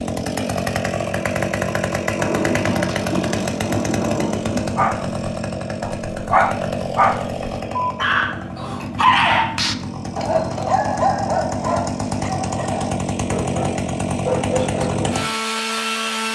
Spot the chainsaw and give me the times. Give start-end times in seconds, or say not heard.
0.0-16.3.